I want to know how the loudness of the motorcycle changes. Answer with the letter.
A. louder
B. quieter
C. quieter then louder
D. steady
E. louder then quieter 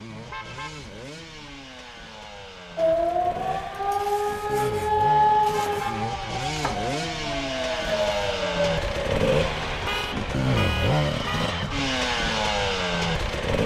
A.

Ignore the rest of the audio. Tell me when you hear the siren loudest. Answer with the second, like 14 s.
5 s.